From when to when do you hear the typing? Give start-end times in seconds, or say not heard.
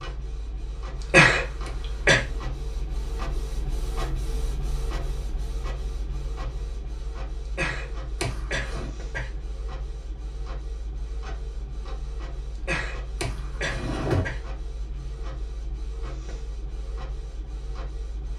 not heard.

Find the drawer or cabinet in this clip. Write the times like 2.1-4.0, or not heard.
1.6-2.5, 8.2-8.9, 13.2-14.2.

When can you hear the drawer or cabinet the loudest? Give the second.
14 s.